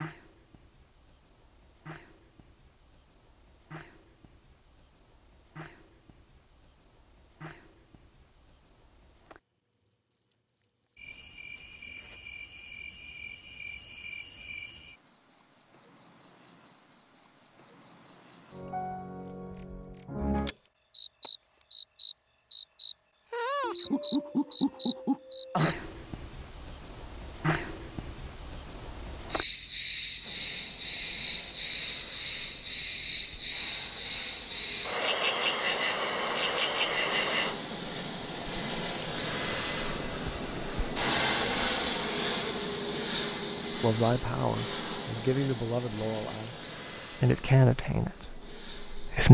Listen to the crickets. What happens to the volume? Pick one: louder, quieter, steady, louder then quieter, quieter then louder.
louder.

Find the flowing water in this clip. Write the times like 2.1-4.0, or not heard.
not heard.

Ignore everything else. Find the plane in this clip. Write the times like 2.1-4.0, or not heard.
30.2-49.2.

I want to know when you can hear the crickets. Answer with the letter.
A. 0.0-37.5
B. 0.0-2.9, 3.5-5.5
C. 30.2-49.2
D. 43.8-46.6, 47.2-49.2
A.